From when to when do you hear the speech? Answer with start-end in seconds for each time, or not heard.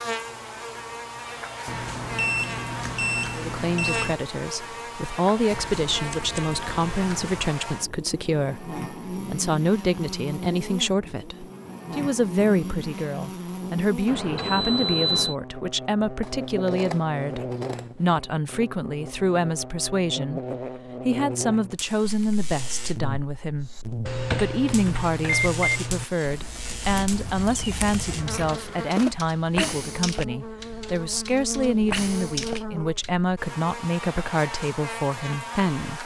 3.4-20.4, 21.0-36.0.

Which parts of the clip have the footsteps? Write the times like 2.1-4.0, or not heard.
not heard.